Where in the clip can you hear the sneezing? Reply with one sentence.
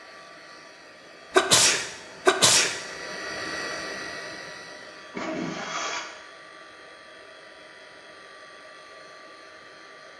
You can hear the sneezing from 1.4 to 2.8 s and from 5.1 to 6.0 s.